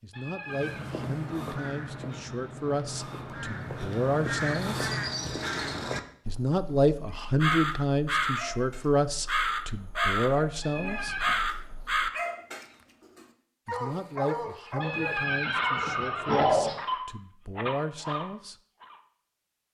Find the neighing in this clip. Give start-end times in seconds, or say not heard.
0.1-0.9, 10.6-11.4, 14.8-16.8.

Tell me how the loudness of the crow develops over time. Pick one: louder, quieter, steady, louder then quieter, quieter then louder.
louder.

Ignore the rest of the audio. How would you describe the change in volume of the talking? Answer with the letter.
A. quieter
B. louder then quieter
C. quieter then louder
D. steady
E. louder
B.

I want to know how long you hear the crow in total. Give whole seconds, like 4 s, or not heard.
12 s.